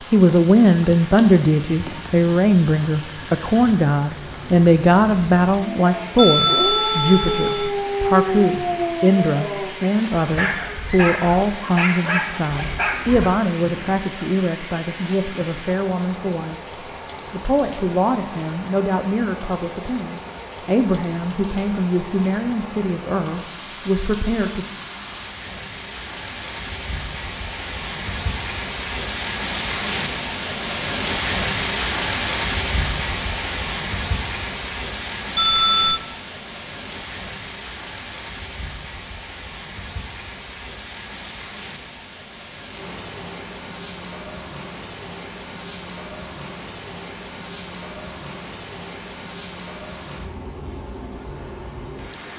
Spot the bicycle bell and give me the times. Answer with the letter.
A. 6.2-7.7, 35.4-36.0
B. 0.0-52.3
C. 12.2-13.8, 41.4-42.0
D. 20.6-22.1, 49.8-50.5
A.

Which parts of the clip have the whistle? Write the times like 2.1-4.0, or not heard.
not heard.